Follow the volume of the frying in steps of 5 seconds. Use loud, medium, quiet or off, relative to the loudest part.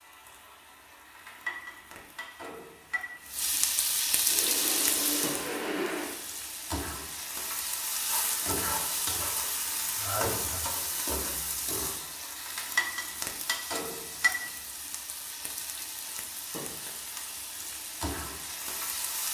loud, loud, loud, medium.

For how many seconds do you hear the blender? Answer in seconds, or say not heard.
2 s.